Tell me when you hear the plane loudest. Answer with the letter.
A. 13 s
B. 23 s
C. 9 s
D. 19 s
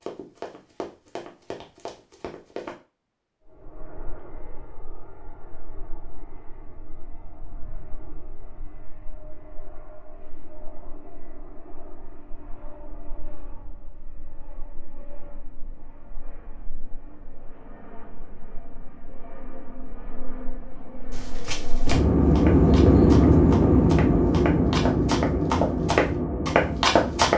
B.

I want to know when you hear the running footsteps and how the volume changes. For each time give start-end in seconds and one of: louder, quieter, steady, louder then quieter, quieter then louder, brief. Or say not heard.
0.0-2.8 brief
21.1-27.3 louder.